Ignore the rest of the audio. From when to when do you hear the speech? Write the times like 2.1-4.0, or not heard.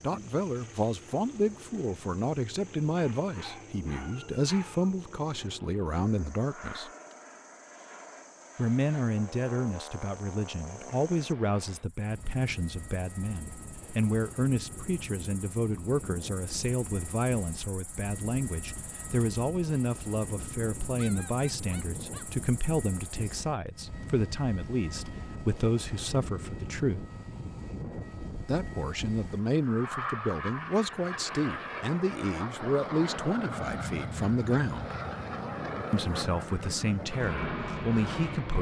0.0-6.9, 8.6-27.1, 28.4-35.0, 35.9-38.5.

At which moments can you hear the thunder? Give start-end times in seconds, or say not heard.
not heard.